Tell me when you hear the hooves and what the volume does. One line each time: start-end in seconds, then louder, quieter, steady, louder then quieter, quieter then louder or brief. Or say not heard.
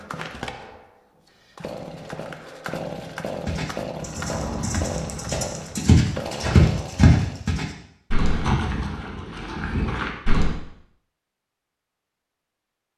3.5-10.6 louder then quieter.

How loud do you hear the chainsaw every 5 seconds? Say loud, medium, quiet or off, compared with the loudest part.
loud, loud, off.